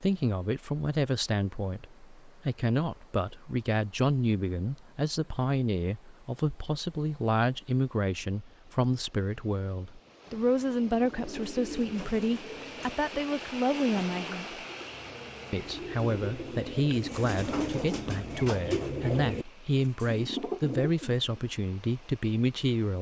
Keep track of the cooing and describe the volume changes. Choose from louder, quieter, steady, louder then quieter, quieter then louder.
quieter then louder.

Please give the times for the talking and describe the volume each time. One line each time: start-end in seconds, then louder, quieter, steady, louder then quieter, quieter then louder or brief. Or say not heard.
0.0-14.6 steady
15.5-22.9 steady.